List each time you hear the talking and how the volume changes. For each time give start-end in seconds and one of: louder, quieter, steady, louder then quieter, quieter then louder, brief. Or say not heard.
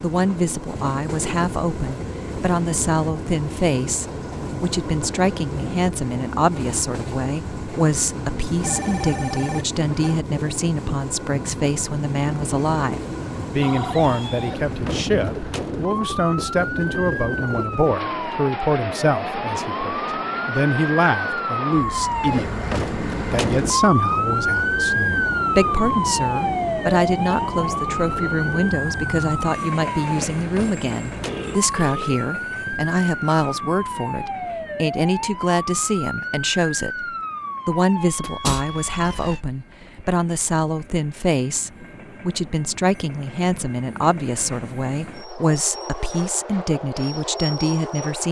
0.0-37.0 steady
37.6-48.2 steady.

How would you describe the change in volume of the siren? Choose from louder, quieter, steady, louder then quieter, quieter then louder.
louder then quieter.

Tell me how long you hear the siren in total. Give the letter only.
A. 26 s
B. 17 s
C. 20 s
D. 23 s
A.